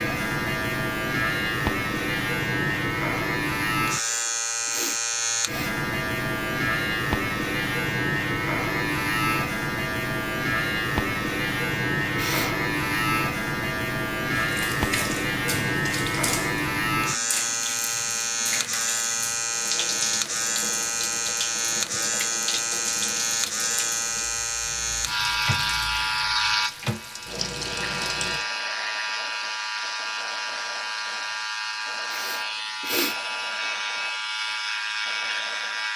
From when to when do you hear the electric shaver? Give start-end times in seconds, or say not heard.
0.0-35.9.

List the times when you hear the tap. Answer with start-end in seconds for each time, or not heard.
14.4-28.4.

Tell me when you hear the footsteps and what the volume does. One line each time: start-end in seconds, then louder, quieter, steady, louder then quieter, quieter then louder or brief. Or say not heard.
not heard.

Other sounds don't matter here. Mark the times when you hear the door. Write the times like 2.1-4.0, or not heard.
not heard.